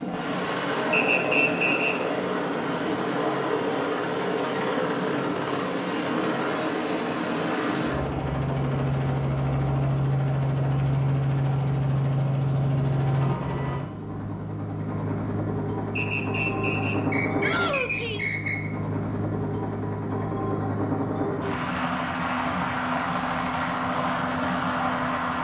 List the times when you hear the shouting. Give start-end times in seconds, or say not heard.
17.4-18.4.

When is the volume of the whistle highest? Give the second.
1 s.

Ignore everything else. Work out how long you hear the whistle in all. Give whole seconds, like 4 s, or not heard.
4 s.